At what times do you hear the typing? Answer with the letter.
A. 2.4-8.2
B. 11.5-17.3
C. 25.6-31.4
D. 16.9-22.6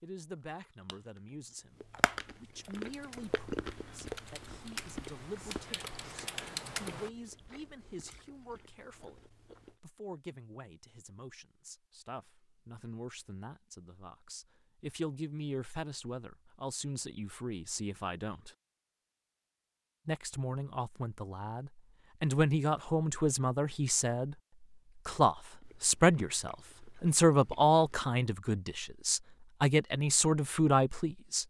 A.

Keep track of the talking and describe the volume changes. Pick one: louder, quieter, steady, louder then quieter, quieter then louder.
louder.